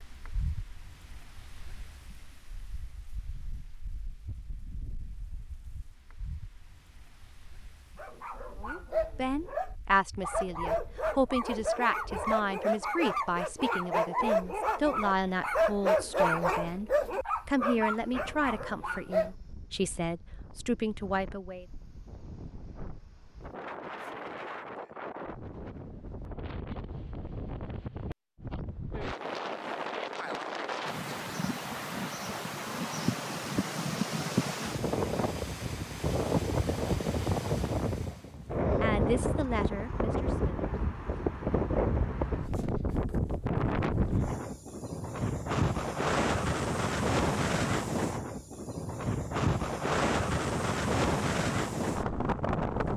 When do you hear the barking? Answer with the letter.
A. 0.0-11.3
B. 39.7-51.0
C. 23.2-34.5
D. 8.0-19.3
D.